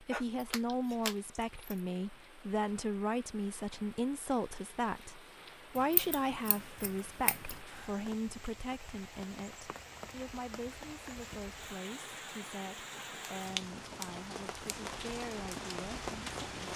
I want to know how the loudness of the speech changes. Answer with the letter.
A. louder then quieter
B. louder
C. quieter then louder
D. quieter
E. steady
D.